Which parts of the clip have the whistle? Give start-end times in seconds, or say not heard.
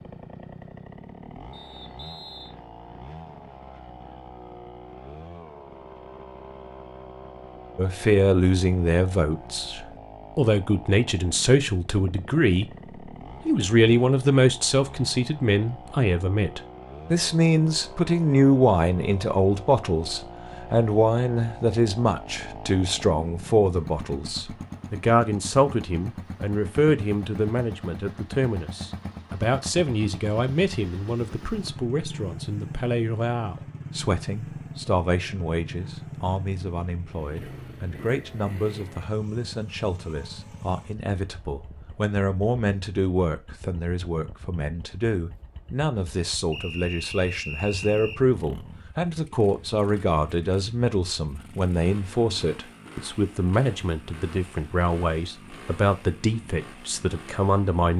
1.5-2.5, 46.5-48.2.